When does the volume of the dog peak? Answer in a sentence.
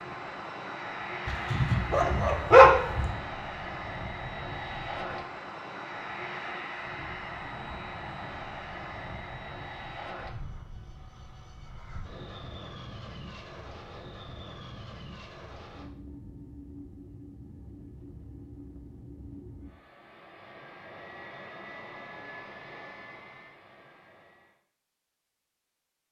The loudest moment of the dog is at 3 seconds.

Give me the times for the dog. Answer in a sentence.
The dog can be heard from 1.2 to 3.1 s.